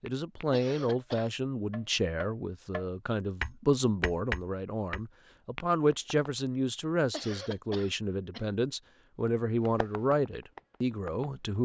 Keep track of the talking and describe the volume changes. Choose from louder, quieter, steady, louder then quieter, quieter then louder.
steady.